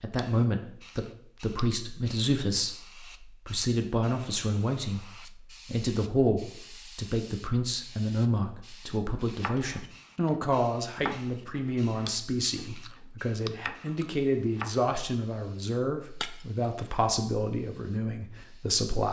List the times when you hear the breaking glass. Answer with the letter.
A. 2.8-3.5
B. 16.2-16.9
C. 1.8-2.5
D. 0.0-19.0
B.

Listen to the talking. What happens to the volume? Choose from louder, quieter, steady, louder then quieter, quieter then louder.
steady.